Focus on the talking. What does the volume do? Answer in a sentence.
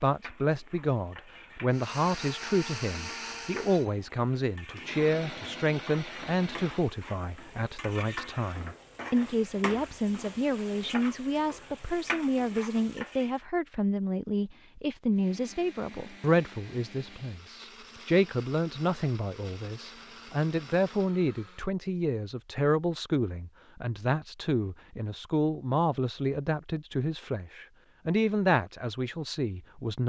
The volume of the talking stays about the same.